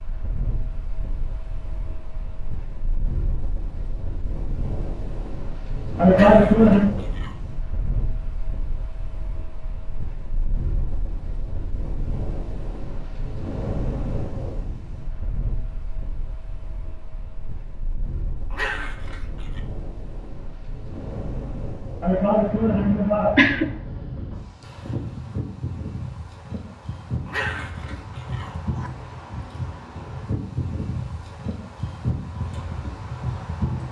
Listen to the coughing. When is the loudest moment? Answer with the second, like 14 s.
6 s.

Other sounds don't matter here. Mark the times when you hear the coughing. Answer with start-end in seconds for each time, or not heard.
6.0-7.0, 22.0-23.7.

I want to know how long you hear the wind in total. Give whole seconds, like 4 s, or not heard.
34 s.